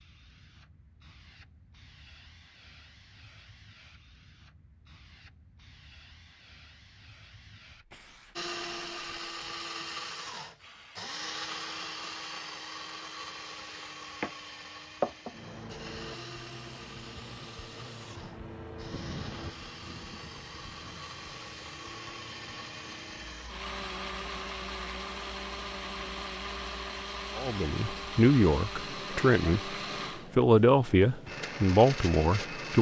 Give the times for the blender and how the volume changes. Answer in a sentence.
You can hear the blender from 8.3 to 32.7 s, getting quieter then louder.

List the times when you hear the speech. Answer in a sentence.
You can hear the speech from 27.4 to 29.8 s and from 30.4 to 32.7 s.